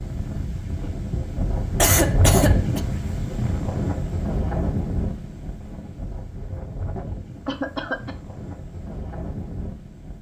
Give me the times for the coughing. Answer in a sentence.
You can hear the coughing from 1.8 to 2.8 s and from 7.5 to 8.2 s.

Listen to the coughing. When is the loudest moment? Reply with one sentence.
The loudest moment of the coughing is at 2 seconds.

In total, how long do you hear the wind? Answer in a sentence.
The wind can be heard for 10 seconds in total.